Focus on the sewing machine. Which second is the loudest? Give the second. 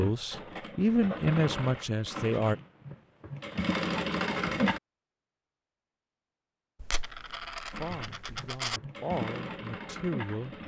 4 s.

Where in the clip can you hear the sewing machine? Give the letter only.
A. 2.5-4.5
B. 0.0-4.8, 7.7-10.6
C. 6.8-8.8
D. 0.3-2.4
B.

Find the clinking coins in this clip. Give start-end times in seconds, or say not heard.
6.8-8.8.